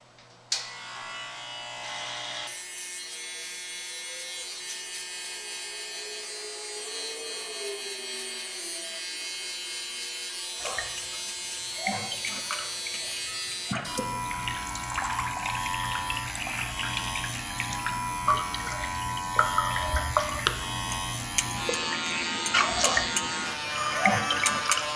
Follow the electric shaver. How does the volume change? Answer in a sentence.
The loudness of the electric shaver goes up.